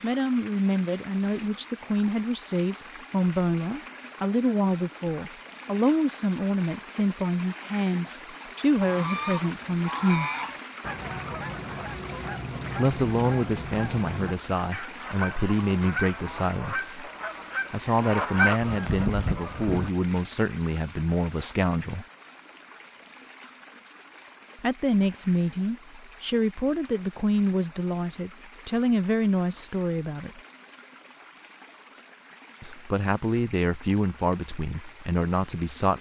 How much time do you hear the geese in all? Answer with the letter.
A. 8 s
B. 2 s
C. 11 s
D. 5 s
C.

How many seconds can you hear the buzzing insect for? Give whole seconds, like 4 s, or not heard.
not heard.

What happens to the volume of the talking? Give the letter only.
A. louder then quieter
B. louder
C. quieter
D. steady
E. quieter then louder
D.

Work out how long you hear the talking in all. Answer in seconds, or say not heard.
28 s.